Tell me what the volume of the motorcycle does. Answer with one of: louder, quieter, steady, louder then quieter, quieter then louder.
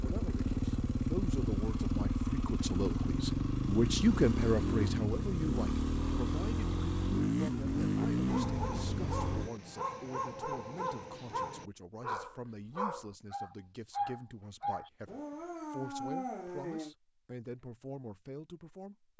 steady.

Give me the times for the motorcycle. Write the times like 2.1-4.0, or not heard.
0.0-9.5.